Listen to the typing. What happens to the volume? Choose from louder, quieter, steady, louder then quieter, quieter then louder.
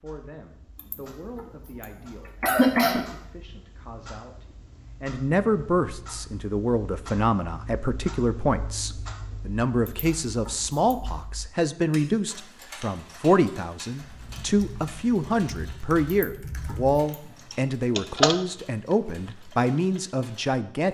louder then quieter.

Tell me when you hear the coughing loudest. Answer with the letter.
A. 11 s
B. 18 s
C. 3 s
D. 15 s
C.